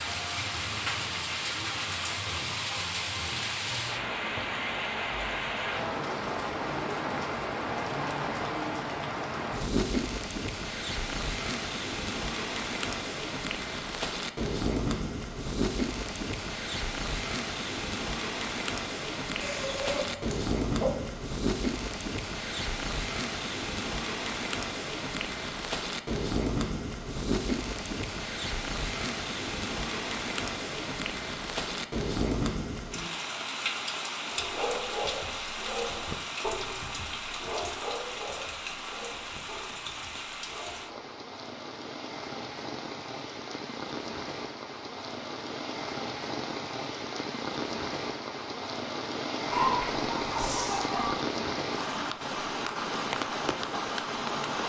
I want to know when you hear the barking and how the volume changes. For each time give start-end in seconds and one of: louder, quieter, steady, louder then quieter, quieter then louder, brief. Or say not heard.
34.3-41.0 quieter.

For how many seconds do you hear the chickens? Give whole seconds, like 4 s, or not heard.
3 s.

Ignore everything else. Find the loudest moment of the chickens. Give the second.
50 s.